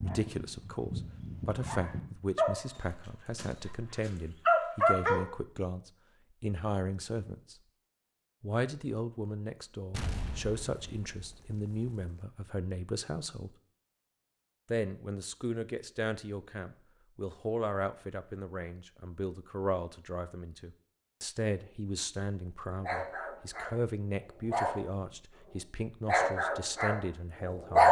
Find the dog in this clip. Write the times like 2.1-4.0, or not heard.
0.0-3.8, 4.5-5.2, 22.8-25.1, 26.1-27.8.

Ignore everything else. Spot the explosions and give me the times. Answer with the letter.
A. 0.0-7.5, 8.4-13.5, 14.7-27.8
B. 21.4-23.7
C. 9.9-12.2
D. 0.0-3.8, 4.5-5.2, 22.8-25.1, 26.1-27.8
C.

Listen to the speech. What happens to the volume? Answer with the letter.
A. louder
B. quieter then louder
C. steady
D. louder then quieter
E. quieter
C.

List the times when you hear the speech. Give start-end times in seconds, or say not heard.
0.0-7.5, 8.4-13.5, 14.7-27.8.